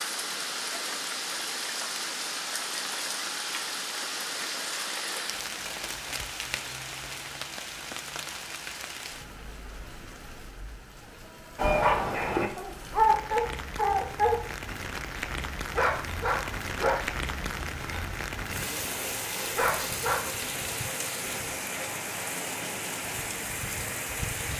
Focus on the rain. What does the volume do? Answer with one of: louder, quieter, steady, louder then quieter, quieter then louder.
quieter then louder.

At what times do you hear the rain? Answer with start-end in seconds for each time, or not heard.
0.0-24.5.